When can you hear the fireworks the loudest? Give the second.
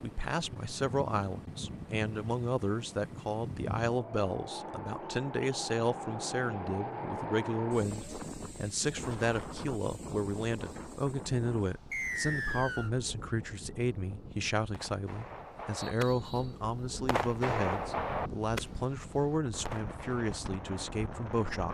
18 s.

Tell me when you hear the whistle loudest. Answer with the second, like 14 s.
12 s.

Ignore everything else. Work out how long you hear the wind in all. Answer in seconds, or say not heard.
22 s.